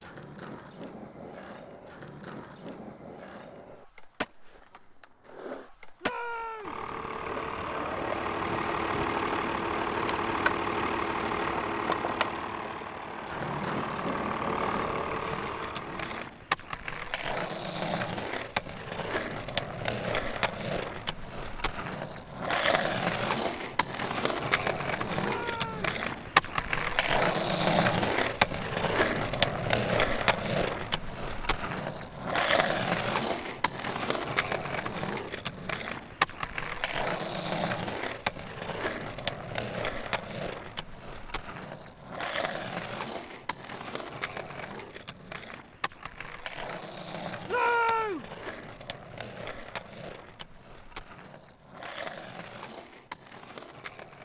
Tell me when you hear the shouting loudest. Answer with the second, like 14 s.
48 s.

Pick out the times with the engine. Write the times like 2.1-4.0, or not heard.
6.6-16.2.